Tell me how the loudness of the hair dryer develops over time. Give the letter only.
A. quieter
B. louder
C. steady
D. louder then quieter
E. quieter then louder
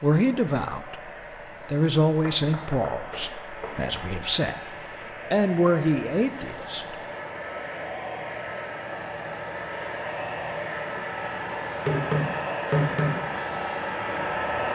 B.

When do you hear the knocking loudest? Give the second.
13 s.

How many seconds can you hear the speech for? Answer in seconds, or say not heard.
7 s.